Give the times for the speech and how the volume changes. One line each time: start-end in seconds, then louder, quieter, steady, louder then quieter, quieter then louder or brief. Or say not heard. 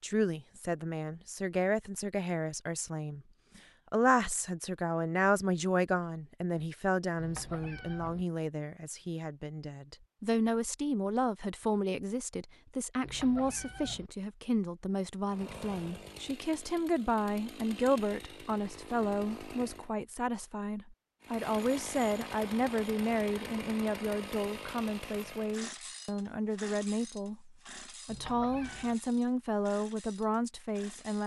0.0-31.2 steady.